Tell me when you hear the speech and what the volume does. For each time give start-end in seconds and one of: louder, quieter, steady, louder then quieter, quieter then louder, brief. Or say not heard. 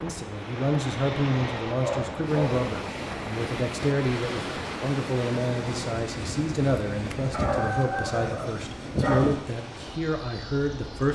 0.0-11.0 steady.